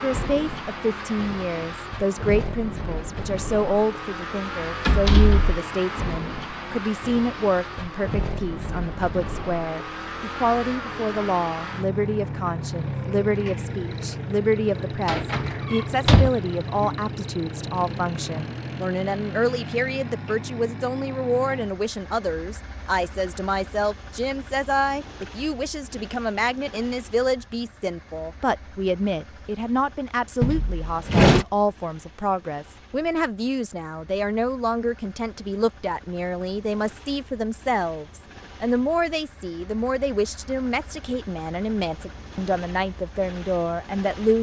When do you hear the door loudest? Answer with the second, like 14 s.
31 s.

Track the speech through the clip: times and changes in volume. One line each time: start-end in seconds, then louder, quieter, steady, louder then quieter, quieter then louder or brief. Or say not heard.
0.0-44.3 steady.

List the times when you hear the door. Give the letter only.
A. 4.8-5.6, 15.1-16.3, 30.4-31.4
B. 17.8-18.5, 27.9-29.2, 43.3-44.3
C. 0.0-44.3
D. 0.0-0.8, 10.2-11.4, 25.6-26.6
A.